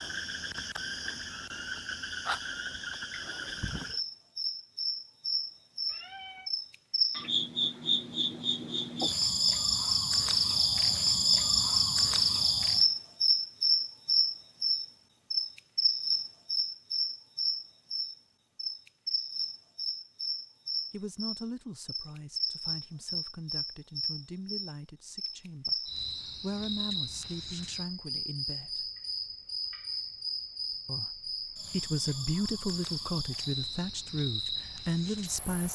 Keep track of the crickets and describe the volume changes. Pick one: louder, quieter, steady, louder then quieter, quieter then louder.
louder then quieter.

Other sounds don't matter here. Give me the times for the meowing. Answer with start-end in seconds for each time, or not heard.
5.8-6.5.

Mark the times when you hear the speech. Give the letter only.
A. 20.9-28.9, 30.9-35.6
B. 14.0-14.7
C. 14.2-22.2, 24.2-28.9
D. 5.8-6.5
A.